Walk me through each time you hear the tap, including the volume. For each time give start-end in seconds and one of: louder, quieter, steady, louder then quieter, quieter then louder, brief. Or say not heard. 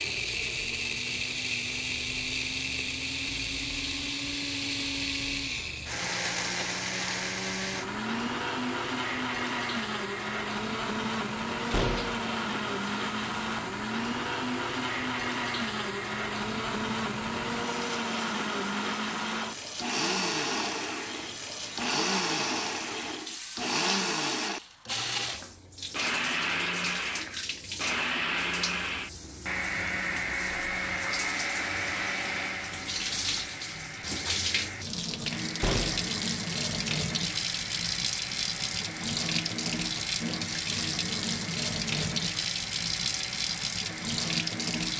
0.0-44.9 louder.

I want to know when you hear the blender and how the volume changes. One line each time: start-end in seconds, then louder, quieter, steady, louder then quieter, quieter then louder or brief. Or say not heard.
0.0-44.9 quieter.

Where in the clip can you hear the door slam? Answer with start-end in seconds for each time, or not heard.
11.7-12.2, 35.6-36.1.